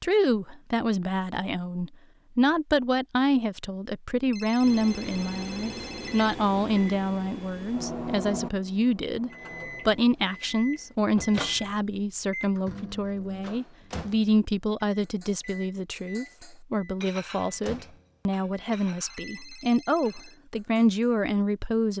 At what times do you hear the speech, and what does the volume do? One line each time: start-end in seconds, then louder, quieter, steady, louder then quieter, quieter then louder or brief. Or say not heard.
0.0-21.9 steady.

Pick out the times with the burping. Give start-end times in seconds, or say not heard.
not heard.